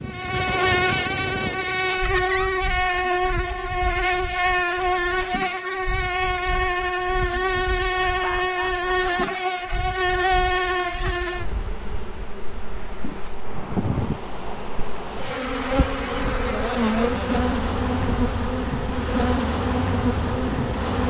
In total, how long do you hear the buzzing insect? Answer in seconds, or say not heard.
21 s.